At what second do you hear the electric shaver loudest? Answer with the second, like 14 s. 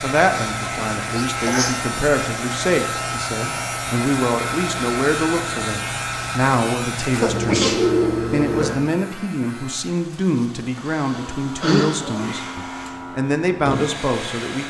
8 s.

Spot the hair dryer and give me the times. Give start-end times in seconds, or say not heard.
0.0-14.6.